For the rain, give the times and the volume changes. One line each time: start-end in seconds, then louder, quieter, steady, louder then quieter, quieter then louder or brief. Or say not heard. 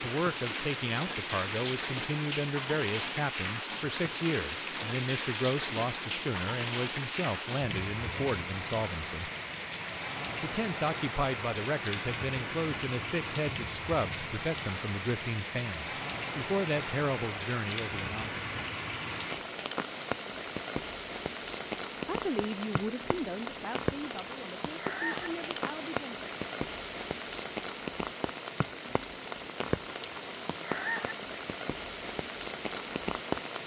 0.0-33.6 steady.